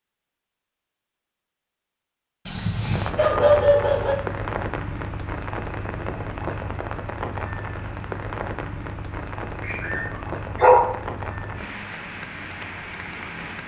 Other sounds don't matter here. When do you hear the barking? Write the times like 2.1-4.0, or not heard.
2.5-4.2, 9.7-10.9.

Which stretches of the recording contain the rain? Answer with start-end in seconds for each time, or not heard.
2.8-13.6.